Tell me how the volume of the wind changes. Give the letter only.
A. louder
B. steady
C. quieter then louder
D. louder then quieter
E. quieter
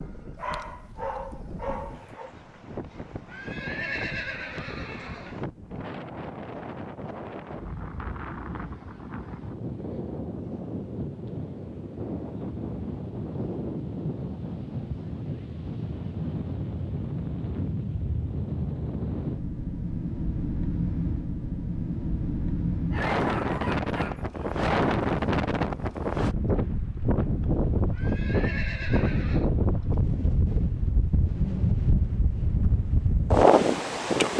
A.